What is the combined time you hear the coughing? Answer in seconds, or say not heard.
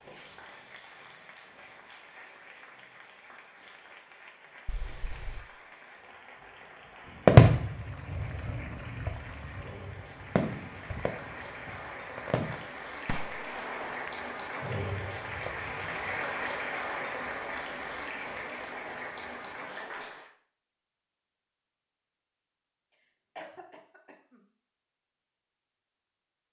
2 s.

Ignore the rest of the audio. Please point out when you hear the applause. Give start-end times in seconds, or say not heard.
0.0-20.3.